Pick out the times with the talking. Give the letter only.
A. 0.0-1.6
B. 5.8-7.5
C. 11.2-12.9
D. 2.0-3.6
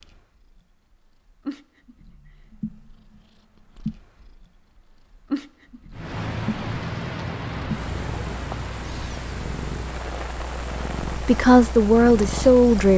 C.